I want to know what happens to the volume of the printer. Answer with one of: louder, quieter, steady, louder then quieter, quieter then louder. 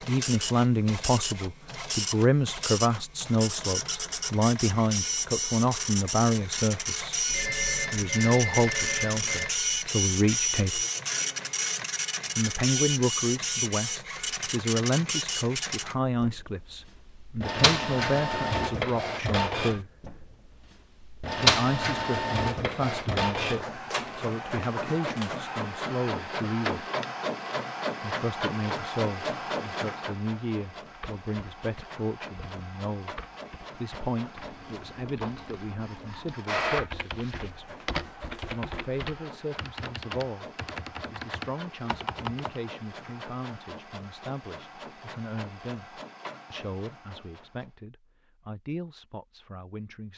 quieter.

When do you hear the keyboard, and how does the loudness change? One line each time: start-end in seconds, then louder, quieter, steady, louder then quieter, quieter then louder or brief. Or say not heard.
30.8-42.6 louder.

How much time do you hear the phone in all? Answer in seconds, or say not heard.
2 s.